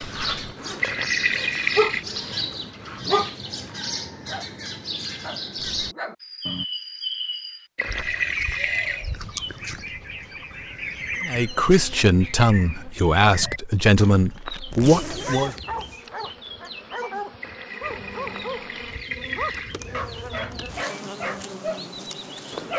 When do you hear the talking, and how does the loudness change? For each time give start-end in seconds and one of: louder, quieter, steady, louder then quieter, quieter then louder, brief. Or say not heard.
11.2-15.6 steady.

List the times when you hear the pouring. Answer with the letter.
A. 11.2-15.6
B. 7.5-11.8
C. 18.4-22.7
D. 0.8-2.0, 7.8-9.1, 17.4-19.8
D.